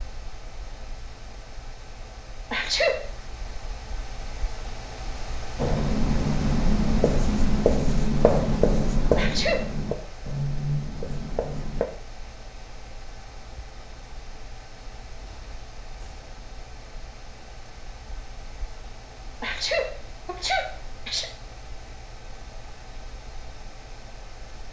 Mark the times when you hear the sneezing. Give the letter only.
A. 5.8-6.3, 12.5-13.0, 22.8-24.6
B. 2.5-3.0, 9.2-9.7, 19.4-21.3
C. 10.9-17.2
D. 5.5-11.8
B.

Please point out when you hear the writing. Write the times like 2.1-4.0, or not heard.
5.5-11.8.